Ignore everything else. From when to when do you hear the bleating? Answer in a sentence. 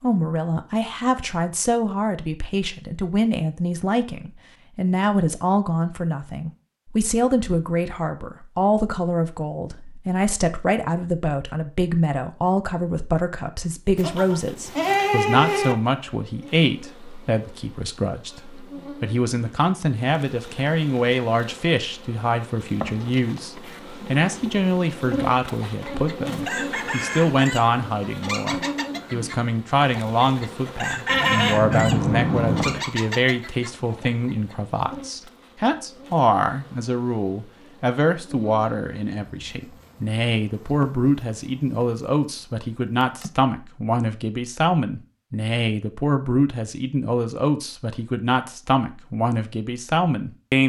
You can hear the bleating from 13.9 to 15.8 s and from 31.1 to 32.9 s.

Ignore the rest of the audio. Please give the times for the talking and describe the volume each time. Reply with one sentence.
The talking can be heard from 0.0 to 50.6 s, at a steady volume.